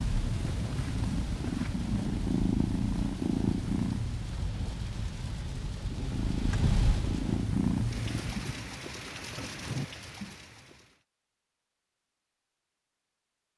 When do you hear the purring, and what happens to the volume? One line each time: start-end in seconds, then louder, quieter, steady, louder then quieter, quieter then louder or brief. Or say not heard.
0.0-4.3 louder
6.0-8.8 brief.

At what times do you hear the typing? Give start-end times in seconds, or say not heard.
not heard.